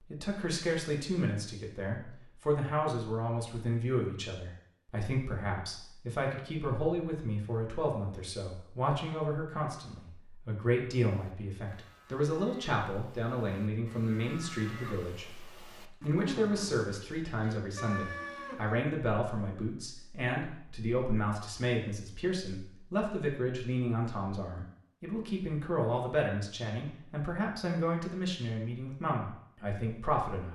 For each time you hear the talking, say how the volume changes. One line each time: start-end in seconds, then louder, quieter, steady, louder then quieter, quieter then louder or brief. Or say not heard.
0.1-30.4 steady.